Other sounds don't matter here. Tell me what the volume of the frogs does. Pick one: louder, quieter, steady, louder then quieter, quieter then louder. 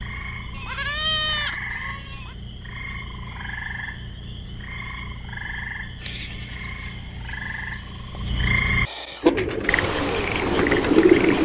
louder.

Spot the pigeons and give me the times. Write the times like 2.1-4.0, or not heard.
9.2-11.4.